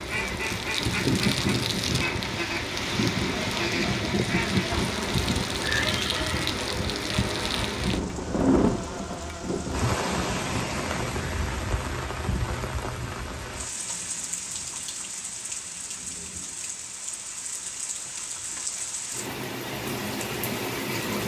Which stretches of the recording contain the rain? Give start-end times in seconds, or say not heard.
0.0-21.2.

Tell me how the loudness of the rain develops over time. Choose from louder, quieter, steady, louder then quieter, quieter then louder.
quieter.